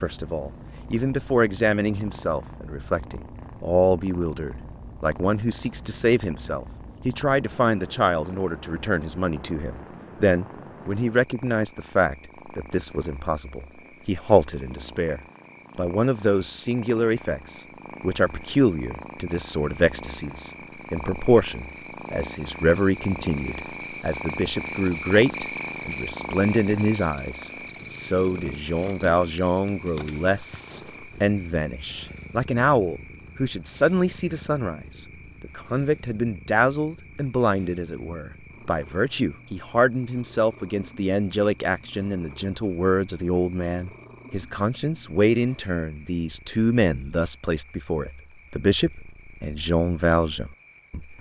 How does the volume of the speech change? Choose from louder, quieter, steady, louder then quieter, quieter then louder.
steady.